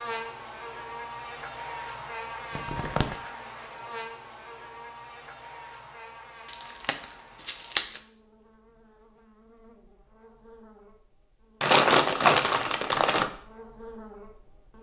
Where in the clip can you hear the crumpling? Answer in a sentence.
The crumpling can be heard from 2.5 to 3.1 s, from 6.5 to 8.0 s and from 11.6 to 13.3 s.